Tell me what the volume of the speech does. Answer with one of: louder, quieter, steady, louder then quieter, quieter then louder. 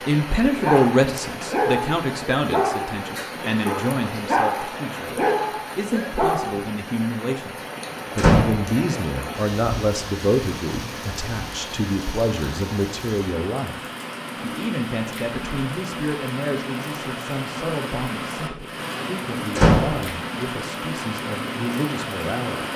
quieter.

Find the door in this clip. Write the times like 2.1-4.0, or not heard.
8.2-8.7, 19.6-20.0.